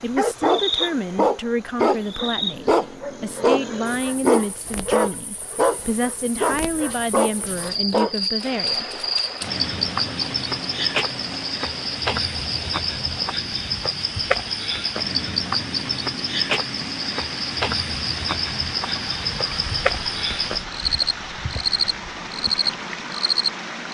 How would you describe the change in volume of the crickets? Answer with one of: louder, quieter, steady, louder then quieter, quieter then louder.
louder.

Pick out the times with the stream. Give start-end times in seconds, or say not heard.
8.3-23.9.